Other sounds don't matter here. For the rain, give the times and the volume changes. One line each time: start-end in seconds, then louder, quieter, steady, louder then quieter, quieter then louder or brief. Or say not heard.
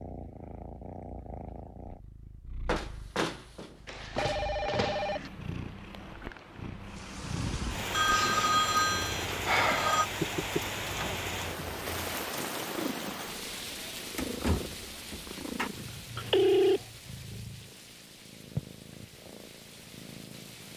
6.8-20.7 quieter.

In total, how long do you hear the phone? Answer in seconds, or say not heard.
4 s.